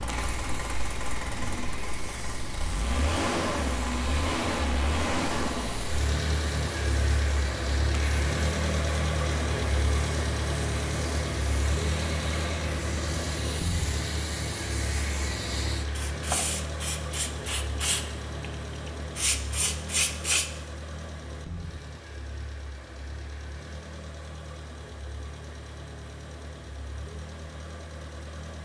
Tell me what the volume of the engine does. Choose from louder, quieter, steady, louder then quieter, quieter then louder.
quieter.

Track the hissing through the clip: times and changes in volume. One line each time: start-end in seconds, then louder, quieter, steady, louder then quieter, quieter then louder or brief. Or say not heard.
0.0-20.5 louder.